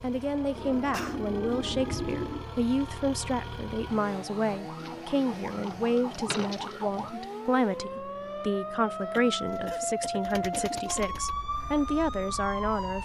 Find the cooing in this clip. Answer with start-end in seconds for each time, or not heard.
0.6-2.5, 4.8-7.0, 9.6-11.3.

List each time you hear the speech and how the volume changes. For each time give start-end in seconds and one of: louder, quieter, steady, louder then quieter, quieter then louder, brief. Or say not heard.
0.0-12.9 steady.